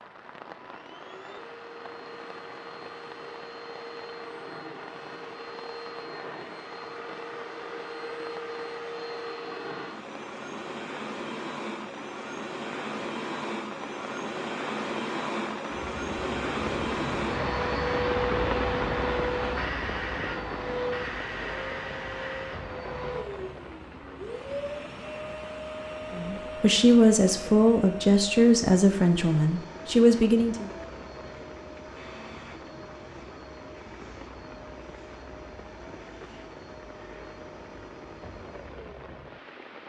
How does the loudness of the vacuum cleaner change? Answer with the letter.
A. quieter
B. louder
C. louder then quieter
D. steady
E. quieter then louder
C.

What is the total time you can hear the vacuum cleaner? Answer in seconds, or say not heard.
40 s.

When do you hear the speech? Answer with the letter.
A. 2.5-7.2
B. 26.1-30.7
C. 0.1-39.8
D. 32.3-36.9
B.